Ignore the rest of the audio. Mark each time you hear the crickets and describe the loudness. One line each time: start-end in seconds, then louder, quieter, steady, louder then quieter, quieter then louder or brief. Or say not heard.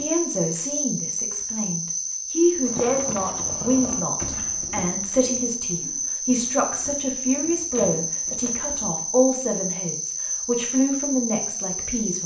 0.0-12.2 steady.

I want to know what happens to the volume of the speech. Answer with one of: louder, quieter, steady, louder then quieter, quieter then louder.
steady.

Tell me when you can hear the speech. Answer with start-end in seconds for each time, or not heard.
0.0-12.2.